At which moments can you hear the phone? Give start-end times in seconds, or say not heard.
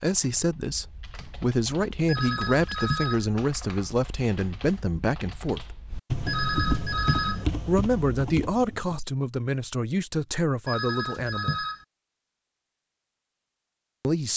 2.0-3.2, 6.2-7.5, 10.7-11.8.